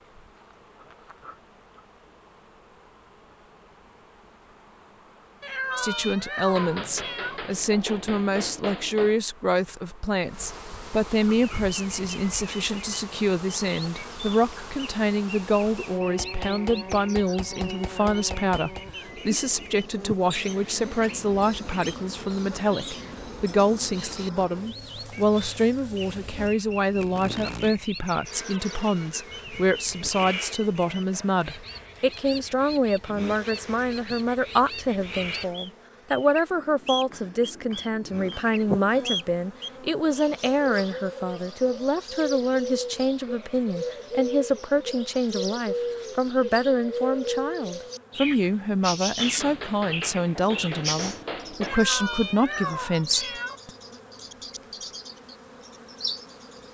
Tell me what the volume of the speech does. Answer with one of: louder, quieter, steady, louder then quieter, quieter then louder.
steady.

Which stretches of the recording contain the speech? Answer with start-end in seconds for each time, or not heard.
5.8-53.7.